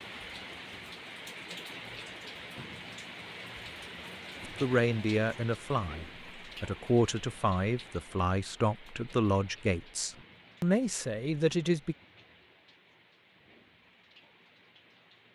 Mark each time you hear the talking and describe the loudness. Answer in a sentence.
You can hear the talking from 4.6 to 11.9 s, at a steady volume.